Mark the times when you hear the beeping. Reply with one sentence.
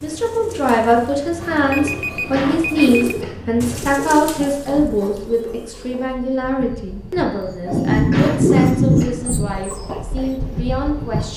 The beeping can be heard from 1.4 to 3.1 s.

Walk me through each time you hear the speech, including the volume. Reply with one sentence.
The speech can be heard from 0.0 to 11.3 s, getting quieter.